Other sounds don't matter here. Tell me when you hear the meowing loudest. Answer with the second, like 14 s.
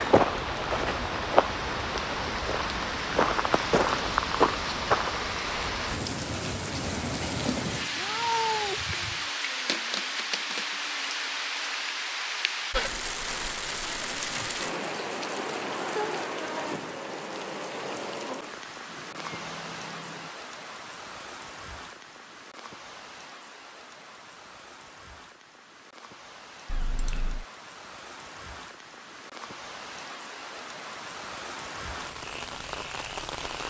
8 s.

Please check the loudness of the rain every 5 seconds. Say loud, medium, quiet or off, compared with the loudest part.
loud, loud, loud, loud, quiet, quiet, medium.